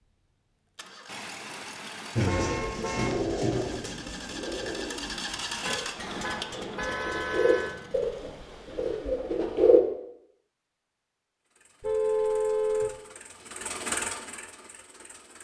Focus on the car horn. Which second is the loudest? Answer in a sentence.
The volume of the car horn peaks at 12 seconds.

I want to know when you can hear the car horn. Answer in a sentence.
You can hear the car horn from 1.1 to 3.1 s, from 5.6 to 7.8 s and from 11.8 to 12.9 s.